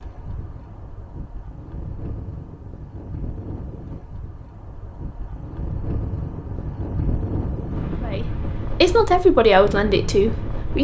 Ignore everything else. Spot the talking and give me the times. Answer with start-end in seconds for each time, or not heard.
8.0-10.7.